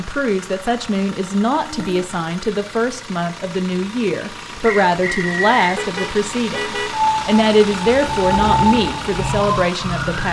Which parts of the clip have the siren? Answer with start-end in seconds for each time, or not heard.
6.9-10.2.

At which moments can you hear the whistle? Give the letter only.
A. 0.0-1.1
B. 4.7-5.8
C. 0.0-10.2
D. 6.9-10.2
B.